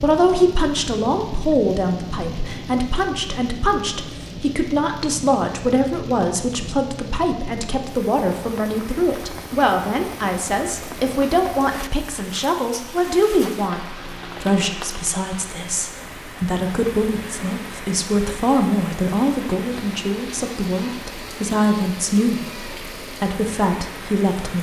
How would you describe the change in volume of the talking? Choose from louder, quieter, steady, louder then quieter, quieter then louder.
steady.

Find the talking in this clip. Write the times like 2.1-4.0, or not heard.
0.0-24.5.